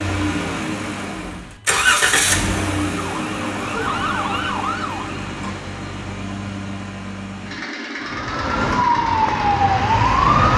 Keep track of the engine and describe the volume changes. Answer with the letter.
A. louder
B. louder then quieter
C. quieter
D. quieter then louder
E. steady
C.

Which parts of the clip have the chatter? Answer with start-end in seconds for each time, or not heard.
not heard.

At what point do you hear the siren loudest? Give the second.
10 s.